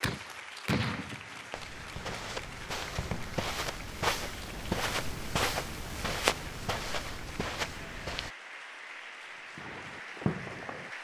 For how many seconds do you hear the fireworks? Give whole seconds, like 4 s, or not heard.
5 s.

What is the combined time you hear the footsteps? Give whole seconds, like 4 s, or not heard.
7 s.